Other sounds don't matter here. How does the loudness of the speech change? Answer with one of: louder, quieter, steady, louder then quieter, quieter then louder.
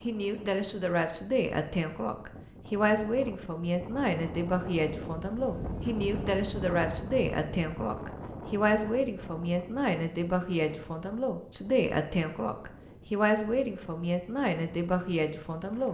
steady.